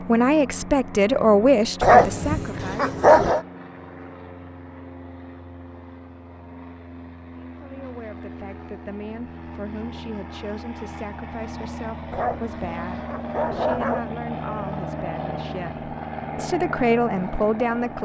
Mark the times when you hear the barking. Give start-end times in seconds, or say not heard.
1.8-3.4, 12.1-14.1.